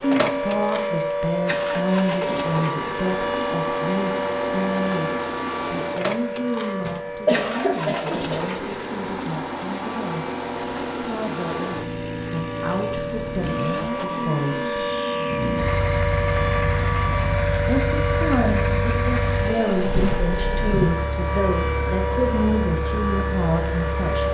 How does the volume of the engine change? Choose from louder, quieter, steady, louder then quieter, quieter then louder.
steady.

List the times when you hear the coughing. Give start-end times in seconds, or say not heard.
6.8-8.4.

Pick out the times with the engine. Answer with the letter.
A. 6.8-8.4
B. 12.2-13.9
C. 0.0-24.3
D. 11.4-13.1
C.